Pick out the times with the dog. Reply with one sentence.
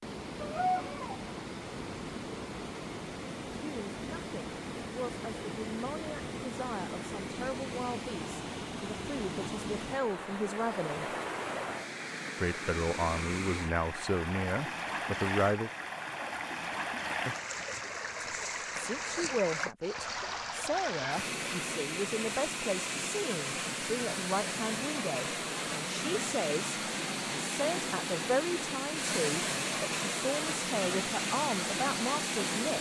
The dog can be heard from 0.4 to 1.2 s.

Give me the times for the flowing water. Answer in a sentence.
You can hear the flowing water from 0.0 to 32.7 s.